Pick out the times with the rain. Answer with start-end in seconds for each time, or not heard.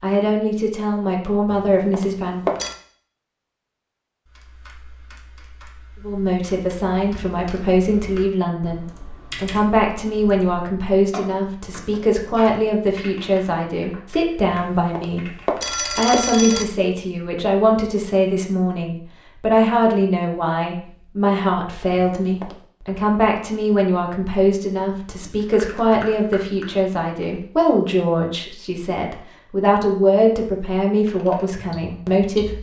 not heard.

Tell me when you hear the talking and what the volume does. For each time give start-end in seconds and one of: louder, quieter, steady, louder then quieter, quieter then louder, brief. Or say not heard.
0.0-2.5 brief
6.0-32.5 steady.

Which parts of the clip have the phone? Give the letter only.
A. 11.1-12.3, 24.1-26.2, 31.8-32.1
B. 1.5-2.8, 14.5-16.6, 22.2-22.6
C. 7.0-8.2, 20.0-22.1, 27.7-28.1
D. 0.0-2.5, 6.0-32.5
B.